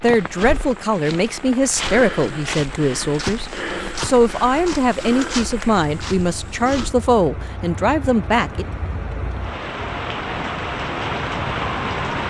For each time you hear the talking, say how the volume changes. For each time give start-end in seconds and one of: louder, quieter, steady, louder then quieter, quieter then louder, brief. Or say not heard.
0.0-8.7 steady.